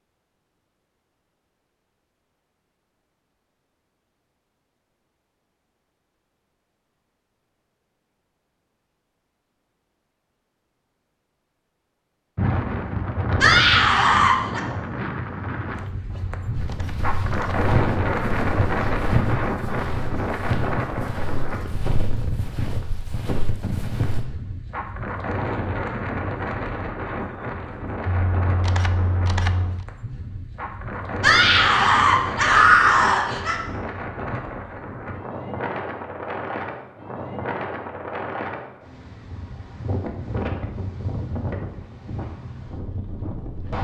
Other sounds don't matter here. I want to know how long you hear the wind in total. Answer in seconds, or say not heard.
31 s.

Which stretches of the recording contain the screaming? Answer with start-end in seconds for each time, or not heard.
13.4-14.6, 31.2-33.5.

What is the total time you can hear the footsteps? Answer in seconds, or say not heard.
8 s.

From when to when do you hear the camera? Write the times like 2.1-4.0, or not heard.
16.1-17.6, 28.1-29.9.